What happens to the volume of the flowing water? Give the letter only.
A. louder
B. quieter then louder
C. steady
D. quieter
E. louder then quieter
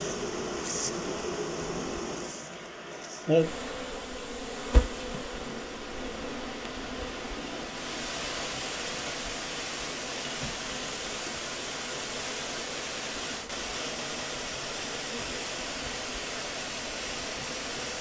A.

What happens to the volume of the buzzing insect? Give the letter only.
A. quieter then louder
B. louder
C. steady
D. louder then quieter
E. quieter
E.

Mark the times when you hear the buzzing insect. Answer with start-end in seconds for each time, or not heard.
0.0-17.9.